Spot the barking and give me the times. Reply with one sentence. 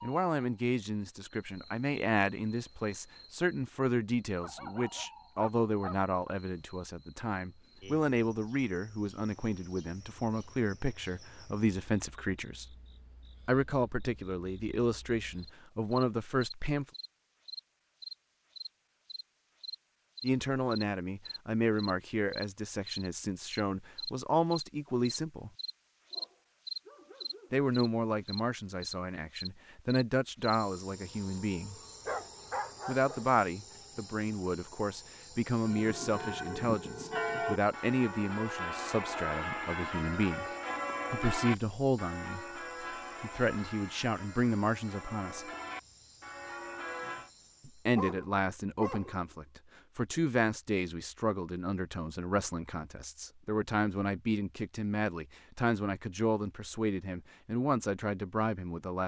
You can hear the barking from 4.4 to 6.3 s, from 26.1 to 27.7 s, from 32.0 to 33.8 s and from 48.0 to 49.4 s.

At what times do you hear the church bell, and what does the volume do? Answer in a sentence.
The church bell can be heard from 35.6 to 47.3 s, getting quieter.